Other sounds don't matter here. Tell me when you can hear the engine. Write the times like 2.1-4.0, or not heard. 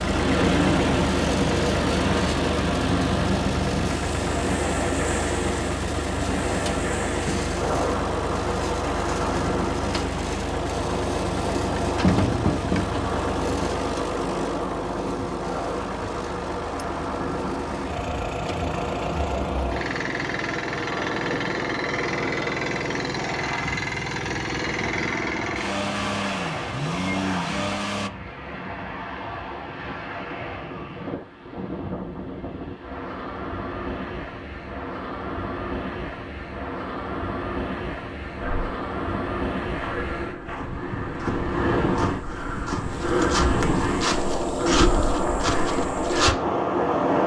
0.0-28.1.